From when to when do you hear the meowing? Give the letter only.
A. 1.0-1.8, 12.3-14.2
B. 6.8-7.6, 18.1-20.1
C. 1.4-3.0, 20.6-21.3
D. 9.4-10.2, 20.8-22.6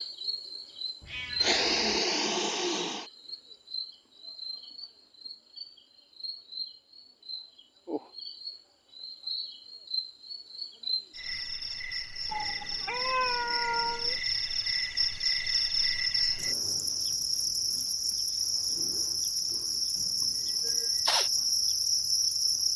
A.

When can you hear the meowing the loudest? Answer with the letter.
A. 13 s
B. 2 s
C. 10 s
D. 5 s
A.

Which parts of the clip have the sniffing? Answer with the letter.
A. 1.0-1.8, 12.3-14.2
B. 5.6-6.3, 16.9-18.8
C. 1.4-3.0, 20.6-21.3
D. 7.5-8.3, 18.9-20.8
C.